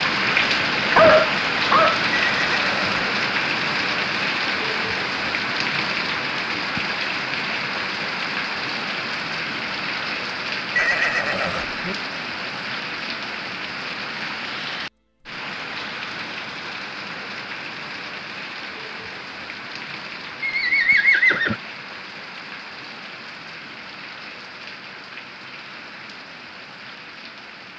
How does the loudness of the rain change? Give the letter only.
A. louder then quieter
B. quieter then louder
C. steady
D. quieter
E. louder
D.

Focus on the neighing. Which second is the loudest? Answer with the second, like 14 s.
21 s.